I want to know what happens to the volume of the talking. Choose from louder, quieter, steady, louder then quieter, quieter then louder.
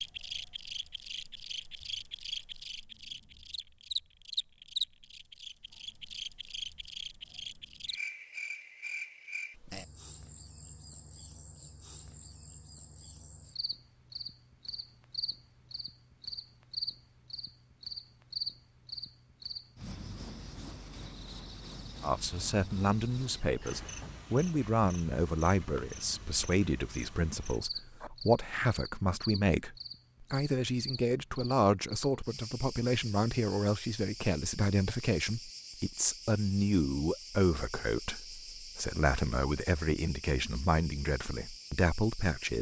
steady.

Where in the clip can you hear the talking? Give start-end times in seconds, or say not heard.
22.0-42.5.